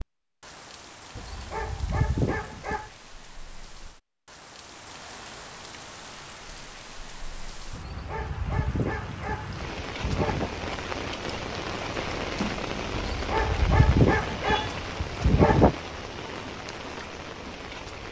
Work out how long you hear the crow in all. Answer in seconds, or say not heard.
not heard.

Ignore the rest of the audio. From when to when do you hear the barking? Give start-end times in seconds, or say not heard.
1.1-2.9, 7.7-10.5, 12.9-15.8.